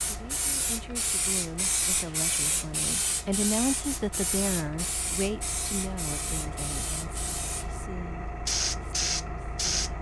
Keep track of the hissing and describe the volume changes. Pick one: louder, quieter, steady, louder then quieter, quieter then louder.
quieter then louder.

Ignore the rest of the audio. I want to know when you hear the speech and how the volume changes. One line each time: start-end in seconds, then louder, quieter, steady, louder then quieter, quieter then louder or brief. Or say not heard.
0.0-9.9 louder then quieter.